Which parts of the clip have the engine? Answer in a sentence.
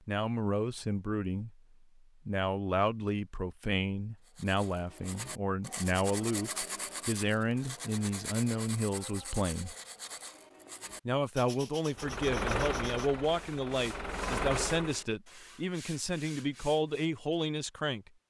You can hear the engine from 11.9 to 15.1 s.